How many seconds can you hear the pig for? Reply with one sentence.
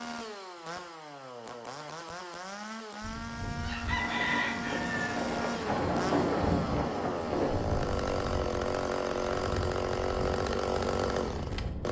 The pig can't be heard in this clip.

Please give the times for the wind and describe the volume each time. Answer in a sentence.
The wind can be heard from 3.0 to 11.8 s, getting louder then quieter.